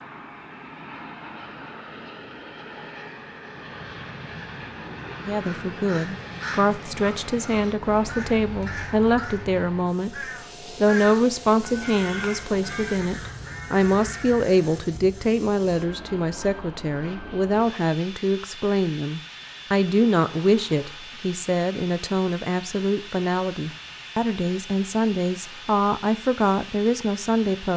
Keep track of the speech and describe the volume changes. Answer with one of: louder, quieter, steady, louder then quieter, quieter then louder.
steady.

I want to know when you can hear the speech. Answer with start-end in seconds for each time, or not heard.
5.2-27.7.